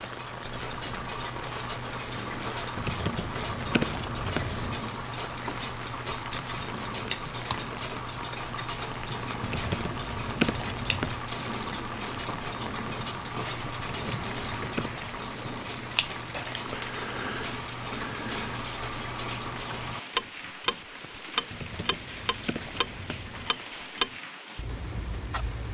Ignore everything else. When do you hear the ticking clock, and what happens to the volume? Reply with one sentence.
The ticking clock can be heard from 0.0 to 25.7 s, at a steady volume.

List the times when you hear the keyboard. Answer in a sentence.
You can hear the keyboard from 2.8 to 4.8 s, from 9.4 to 11.2 s, from 13.8 to 15.2 s and from 21.5 to 23.5 s.